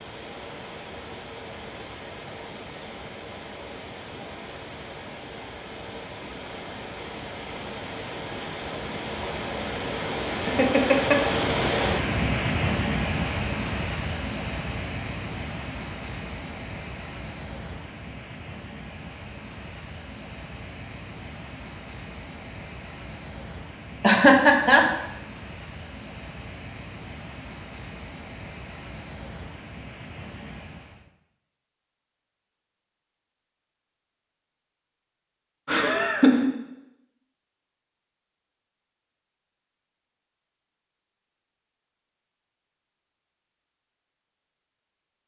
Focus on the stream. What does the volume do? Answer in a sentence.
The loudness of the stream goes up, then down.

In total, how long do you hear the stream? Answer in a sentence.
You can hear the stream for 31 seconds altogether.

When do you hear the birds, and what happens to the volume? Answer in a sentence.
The birds can't be heard in this clip.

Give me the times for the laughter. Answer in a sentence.
You can hear the laughter from 10.4 to 11.2 s, from 24.0 to 24.9 s and from 35.6 to 36.5 s.